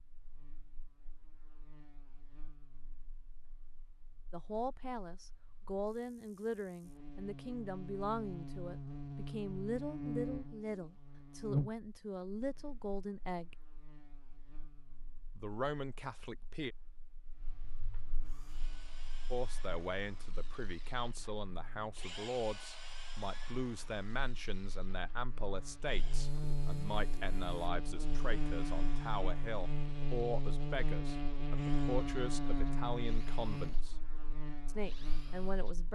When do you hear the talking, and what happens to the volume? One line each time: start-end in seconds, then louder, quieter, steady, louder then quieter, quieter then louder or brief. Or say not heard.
4.3-13.6 steady
15.3-16.8 brief
19.3-34.0 steady
34.6-35.9 brief.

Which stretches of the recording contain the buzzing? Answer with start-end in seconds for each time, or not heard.
0.0-35.9.